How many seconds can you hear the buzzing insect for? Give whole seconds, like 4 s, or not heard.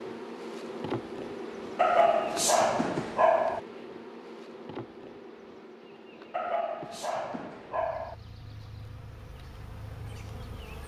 11 s.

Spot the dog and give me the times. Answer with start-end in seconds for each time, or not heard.
1.8-3.6, 6.3-8.2.